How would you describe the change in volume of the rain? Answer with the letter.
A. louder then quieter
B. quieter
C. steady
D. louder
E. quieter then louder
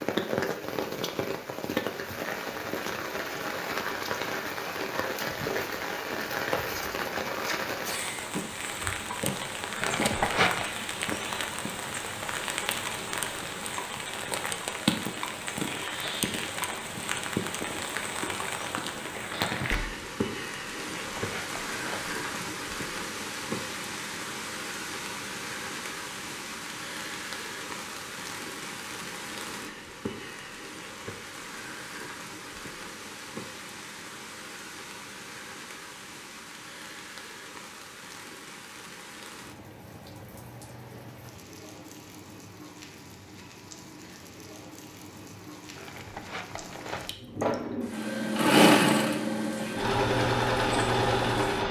B.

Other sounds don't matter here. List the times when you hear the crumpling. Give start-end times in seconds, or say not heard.
9.8-10.7, 20.9-22.4, 45.8-47.1.